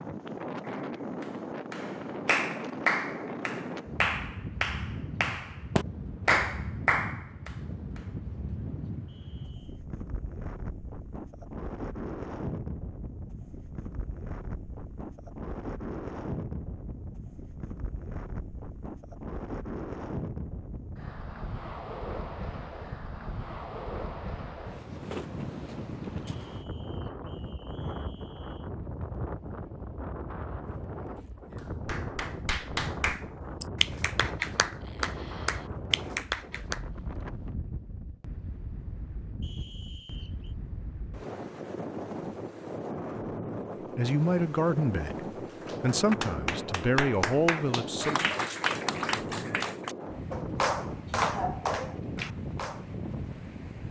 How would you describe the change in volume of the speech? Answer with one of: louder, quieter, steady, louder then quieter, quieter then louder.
quieter then louder.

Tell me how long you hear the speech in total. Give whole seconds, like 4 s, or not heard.
4 s.